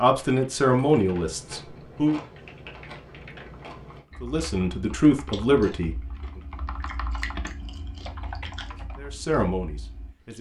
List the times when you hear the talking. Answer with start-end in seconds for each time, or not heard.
0.0-2.2, 4.2-6.0, 8.7-10.3.